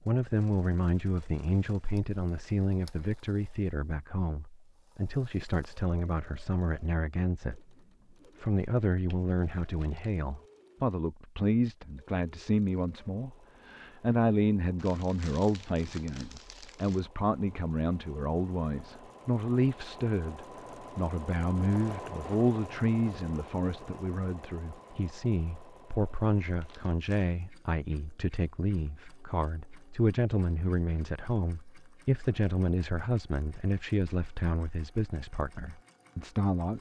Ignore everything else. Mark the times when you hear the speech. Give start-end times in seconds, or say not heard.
0.1-7.6, 8.4-36.7.